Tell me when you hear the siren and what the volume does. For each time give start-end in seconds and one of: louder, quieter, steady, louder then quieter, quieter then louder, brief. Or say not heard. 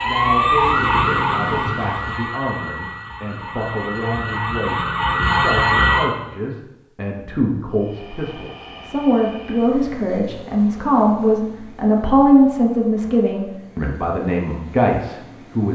0.0-6.1 quieter then louder.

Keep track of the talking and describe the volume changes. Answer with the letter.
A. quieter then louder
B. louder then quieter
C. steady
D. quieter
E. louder
E.